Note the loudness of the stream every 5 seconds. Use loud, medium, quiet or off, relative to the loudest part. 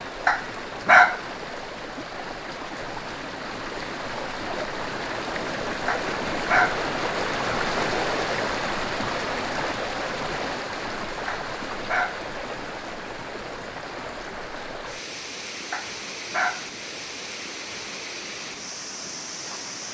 medium, loud, medium, medium.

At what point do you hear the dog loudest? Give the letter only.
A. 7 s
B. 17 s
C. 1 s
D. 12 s
C.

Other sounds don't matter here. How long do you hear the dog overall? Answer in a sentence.
The dog can be heard for 4 seconds in total.